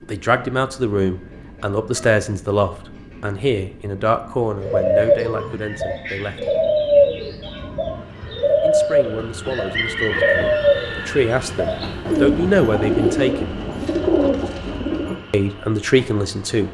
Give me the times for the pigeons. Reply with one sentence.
You can hear the pigeons from 4.5 to 15.2 s.